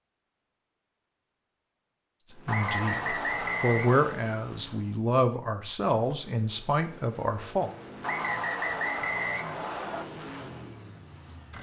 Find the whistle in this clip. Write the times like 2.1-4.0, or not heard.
2.5-4.2, 8.0-10.1.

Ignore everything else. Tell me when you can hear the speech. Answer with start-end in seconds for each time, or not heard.
2.3-7.7.